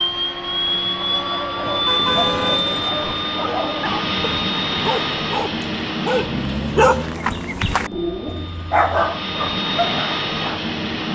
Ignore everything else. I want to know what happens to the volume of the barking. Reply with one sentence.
The volume of the barking goes up.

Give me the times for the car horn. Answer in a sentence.
The car horn can be heard from 1.6 to 3.1 s and from 8.2 to 9.2 s.